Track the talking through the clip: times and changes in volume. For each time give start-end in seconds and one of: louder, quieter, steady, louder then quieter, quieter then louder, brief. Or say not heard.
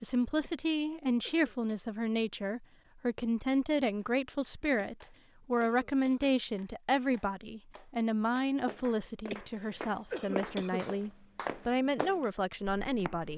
0.0-13.3 steady.